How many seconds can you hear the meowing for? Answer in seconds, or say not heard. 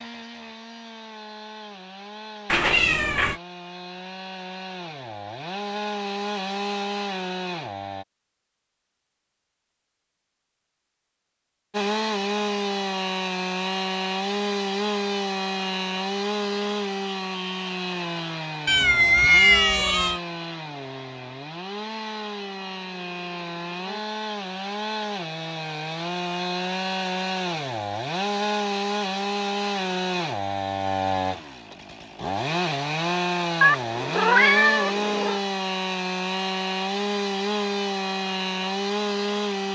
4 s.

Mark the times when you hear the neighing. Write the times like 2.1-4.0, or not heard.
not heard.